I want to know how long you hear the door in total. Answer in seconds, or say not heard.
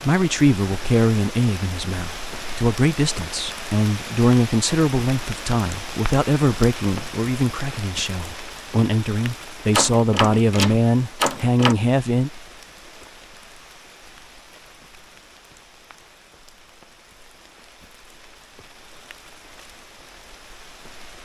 2 s.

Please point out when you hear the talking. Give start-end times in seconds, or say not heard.
0.0-12.3.